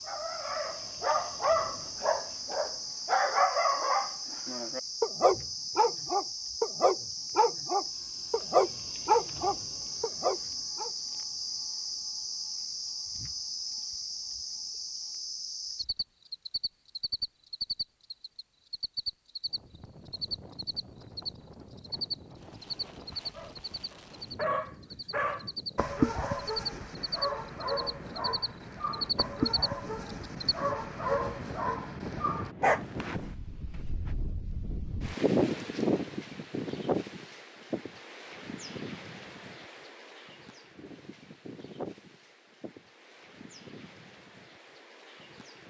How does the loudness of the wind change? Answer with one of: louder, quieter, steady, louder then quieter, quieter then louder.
louder then quieter.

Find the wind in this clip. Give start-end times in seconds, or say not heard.
19.4-45.6.